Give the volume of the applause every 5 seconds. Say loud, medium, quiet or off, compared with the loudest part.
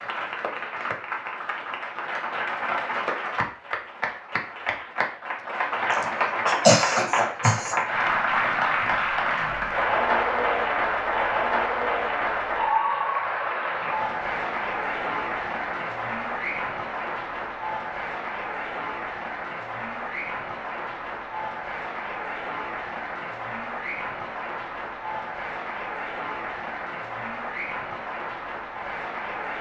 medium, loud, loud, medium, medium, medium.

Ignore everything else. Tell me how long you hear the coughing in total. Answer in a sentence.
The coughing can be heard for 2 seconds in total.